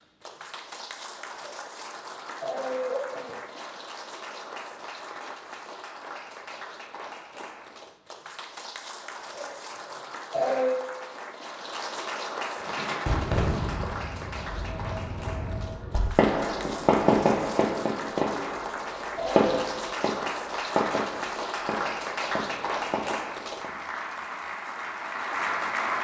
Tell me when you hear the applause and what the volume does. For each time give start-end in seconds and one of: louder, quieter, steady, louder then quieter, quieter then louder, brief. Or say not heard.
0.0-25.9 louder.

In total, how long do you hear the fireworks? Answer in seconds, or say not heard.
11 s.